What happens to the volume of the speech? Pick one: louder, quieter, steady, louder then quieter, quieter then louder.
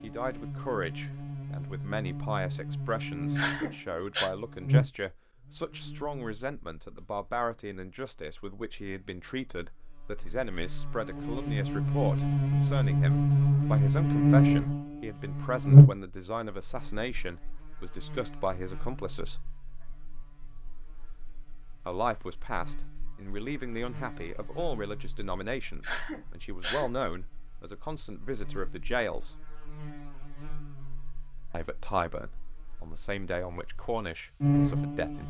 steady.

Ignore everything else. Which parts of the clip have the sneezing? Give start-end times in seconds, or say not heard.
3.3-4.3, 25.8-26.9.